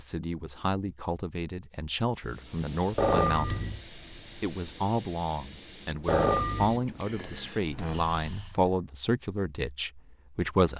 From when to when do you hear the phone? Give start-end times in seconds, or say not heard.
3.0-3.8, 6.0-6.8.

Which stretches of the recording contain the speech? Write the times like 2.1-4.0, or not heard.
0.0-10.7.